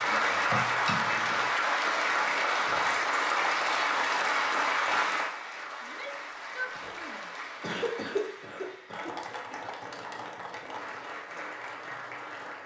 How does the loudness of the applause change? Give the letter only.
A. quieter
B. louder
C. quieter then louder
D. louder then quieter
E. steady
A.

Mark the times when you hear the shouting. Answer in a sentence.
The shouting can be heard from 5.8 to 7.3 s.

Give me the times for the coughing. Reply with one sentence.
You can hear the coughing from 0.5 to 1.4 s and from 6.8 to 9.2 s.